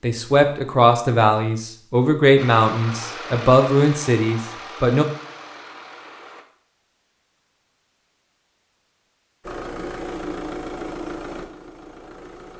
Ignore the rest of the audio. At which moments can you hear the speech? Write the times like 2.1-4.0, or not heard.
0.0-5.0.